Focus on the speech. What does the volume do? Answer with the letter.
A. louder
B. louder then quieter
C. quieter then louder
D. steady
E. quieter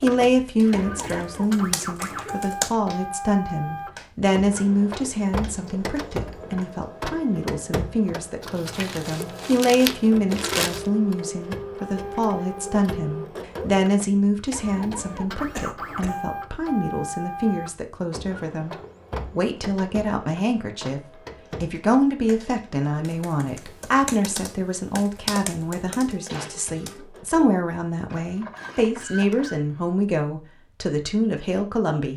D.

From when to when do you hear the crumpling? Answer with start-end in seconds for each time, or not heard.
8.4-10.8.